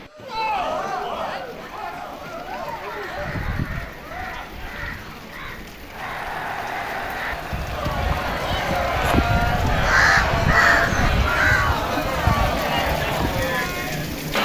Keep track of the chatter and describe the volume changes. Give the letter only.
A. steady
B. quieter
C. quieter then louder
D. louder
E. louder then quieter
C.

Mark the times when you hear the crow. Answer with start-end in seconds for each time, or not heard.
2.6-13.4.